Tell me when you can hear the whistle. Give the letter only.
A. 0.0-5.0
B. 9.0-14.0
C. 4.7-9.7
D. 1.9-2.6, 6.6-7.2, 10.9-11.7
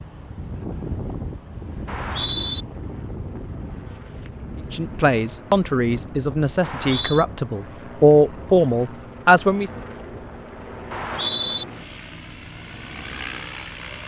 D.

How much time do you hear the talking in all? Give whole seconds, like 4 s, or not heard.
5 s.